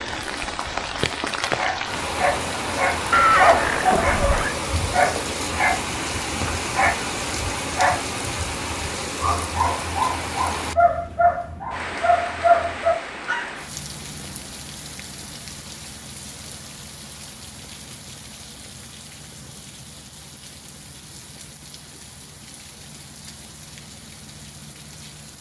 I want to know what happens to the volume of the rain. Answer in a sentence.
The volume of the rain goes down.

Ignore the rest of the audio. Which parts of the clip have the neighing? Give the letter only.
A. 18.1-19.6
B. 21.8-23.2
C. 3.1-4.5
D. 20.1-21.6
C.